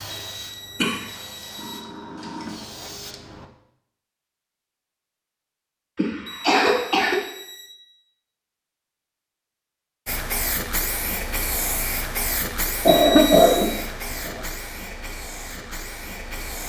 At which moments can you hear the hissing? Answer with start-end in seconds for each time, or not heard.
0.0-3.5, 10.1-16.6.